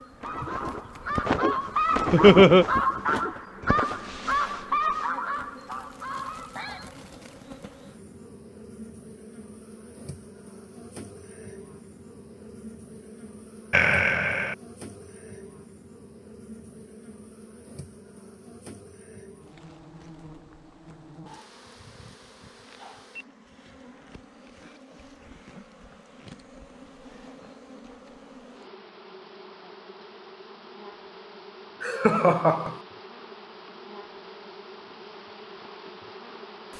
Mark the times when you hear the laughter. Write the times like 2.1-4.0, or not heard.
2.1-2.6, 13.7-14.6, 31.8-32.8.